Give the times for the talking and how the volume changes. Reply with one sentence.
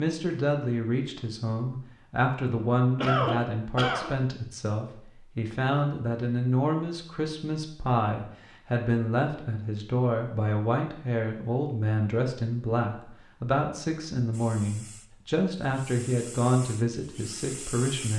You can hear the talking from 0.0 to 18.1 s, at a steady volume.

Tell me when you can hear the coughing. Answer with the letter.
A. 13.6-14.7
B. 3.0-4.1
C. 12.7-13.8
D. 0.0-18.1
B.